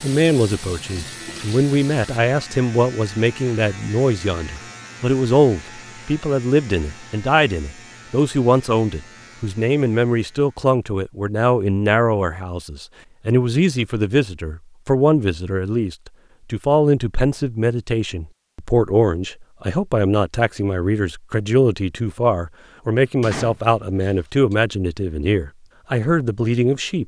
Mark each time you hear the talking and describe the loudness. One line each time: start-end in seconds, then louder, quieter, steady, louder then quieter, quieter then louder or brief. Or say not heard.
0.0-27.0 steady.